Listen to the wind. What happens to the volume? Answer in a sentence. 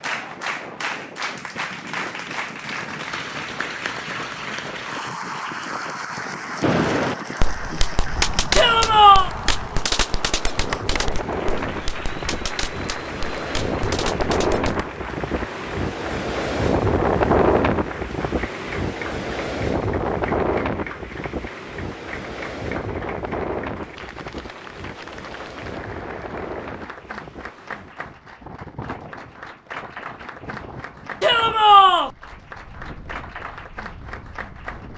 The loudness of the wind goes up, then down.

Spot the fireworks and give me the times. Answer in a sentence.
The fireworks can be heard from 6.6 to 14.9 s.